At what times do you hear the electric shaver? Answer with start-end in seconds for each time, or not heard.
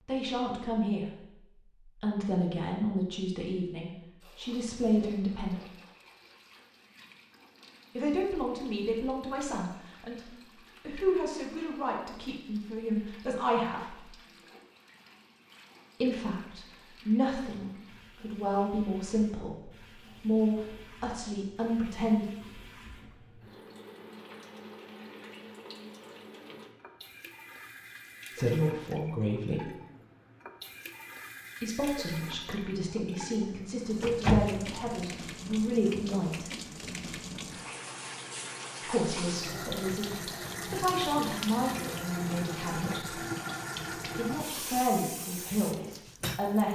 not heard.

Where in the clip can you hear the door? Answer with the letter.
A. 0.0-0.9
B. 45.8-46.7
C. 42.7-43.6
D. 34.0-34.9
D.